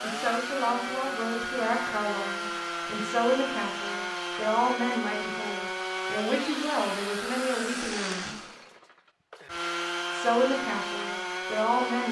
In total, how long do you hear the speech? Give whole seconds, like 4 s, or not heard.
10 s.